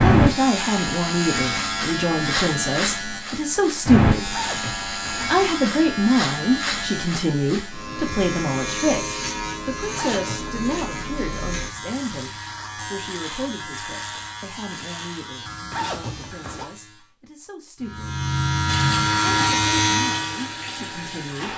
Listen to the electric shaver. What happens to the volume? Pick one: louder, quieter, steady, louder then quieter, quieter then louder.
quieter then louder.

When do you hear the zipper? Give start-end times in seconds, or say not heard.
4.3-5.2, 9.9-10.5, 15.7-16.6.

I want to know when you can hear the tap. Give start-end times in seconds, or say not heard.
18.6-21.5.